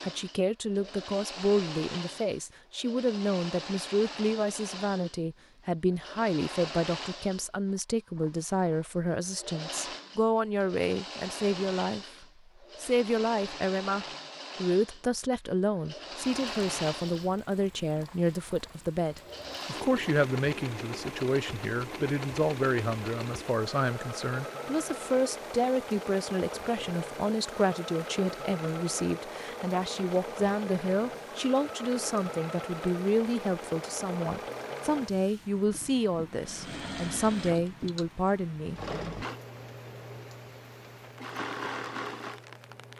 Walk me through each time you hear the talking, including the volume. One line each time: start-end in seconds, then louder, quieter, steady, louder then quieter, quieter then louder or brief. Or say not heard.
0.0-38.8 steady.